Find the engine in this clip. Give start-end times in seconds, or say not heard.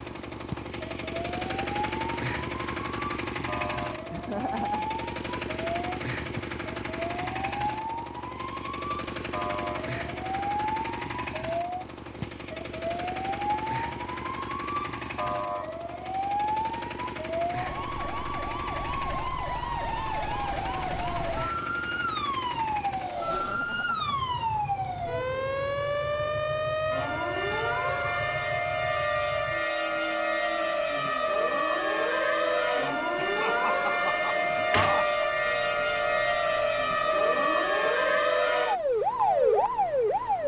0.0-40.4.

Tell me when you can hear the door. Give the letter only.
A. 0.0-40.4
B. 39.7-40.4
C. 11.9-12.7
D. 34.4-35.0
D.